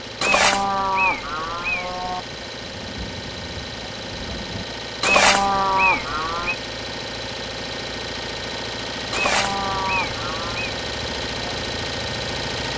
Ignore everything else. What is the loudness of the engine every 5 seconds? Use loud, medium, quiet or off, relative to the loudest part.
medium, loud, loud.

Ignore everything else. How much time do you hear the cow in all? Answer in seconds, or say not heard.
5 s.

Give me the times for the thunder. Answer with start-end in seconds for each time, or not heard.
2.6-4.7.